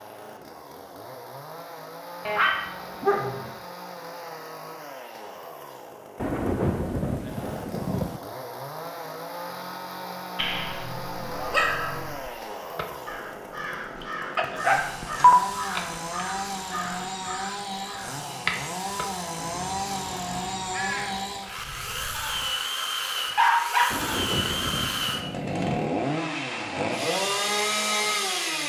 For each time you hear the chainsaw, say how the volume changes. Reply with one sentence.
You can hear the chainsaw from 0.0 to 28.6 s, getting louder.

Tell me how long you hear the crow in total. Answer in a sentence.
You can hear the crow for 10 seconds altogether.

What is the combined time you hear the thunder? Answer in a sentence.
You can hear the thunder for 4 seconds altogether.